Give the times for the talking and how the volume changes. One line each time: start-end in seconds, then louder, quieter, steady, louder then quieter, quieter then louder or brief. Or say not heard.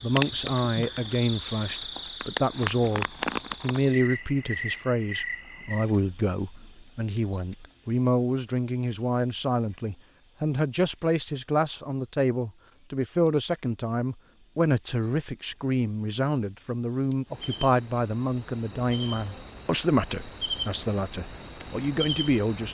0.0-22.6 steady.